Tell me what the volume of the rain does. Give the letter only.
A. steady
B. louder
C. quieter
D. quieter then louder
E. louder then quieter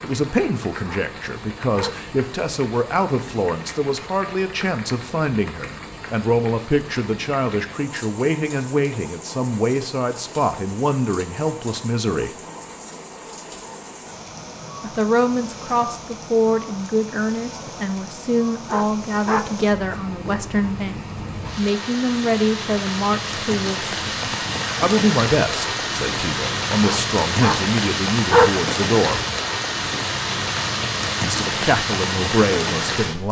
B.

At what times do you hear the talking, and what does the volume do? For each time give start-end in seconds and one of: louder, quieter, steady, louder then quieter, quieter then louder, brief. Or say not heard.
0.0-12.3 steady
14.8-29.2 steady
31.2-33.2 brief.